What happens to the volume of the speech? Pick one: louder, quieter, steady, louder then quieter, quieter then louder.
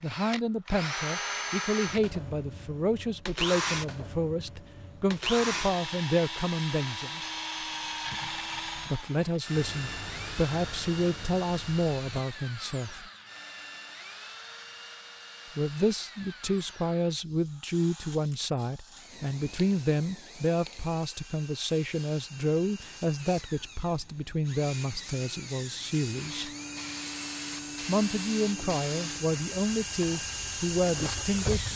steady.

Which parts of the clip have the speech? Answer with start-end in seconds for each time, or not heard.
0.0-7.2, 8.9-13.1, 15.6-26.5, 27.9-31.7.